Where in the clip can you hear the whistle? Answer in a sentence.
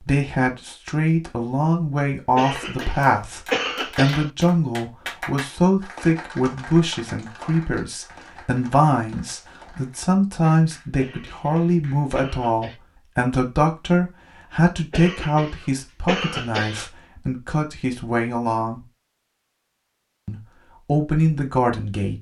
You can't hear the whistle here.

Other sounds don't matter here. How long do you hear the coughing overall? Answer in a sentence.
The coughing can be heard for 6 seconds in total.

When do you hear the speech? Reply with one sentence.
You can hear the speech from 0.0 to 18.9 s and from 20.2 to 22.1 s.